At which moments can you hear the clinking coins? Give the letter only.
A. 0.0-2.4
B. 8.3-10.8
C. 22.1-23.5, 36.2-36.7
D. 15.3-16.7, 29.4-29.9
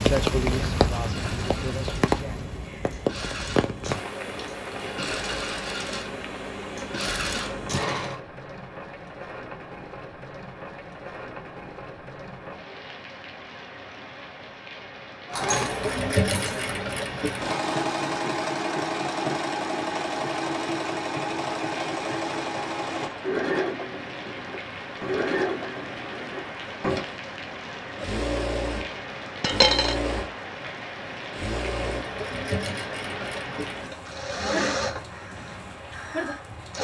D.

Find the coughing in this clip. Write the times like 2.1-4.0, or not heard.
not heard.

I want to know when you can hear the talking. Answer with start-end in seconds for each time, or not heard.
0.0-2.4.